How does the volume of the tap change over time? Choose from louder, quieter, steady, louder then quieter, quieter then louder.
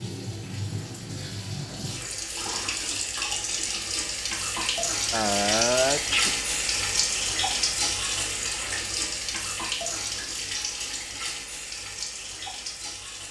louder then quieter.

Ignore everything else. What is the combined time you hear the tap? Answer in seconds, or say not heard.
13 s.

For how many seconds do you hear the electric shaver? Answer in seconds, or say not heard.
not heard.